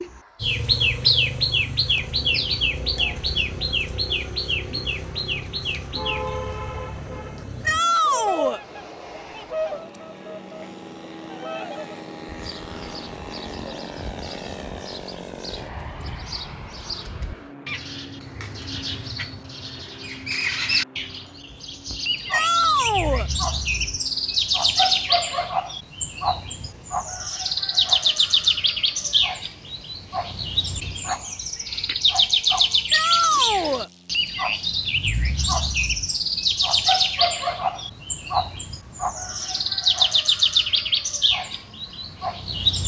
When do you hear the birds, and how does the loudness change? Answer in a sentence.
The birds can be heard from 0.0 to 42.8 s, getting quieter then louder.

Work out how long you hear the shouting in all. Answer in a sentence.
You can hear the shouting for 3 seconds altogether.